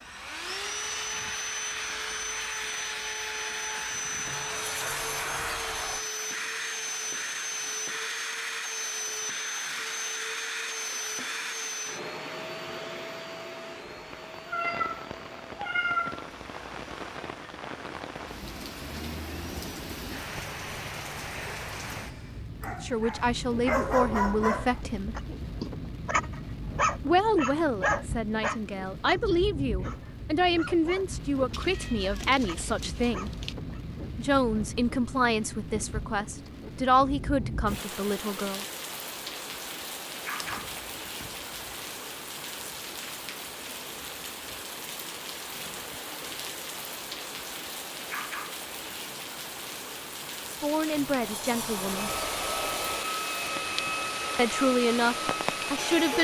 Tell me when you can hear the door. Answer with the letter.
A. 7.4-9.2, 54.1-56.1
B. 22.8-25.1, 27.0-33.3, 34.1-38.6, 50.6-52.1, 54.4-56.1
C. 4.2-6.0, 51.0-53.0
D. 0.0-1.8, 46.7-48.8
C.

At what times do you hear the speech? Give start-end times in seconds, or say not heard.
22.8-25.1, 27.0-33.3, 34.1-38.6, 50.6-52.1, 54.4-56.1.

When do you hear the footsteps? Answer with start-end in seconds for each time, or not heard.
not heard.